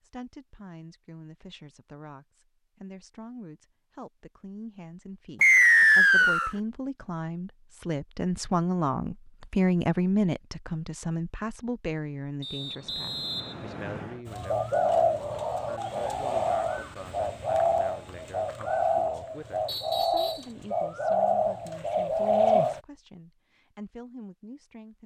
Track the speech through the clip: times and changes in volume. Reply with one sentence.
The speech can be heard from 0.0 to 25.0 s, getting louder then quieter.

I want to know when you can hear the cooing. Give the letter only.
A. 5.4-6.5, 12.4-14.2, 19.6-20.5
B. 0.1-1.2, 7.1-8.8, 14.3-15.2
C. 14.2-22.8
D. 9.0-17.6
C.